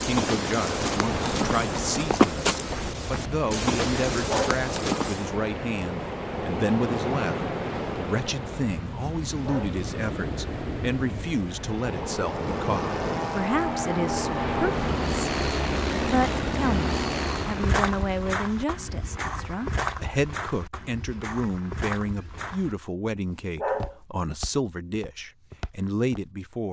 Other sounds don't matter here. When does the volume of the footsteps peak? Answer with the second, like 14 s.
2 s.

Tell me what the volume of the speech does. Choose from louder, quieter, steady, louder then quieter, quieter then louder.
steady.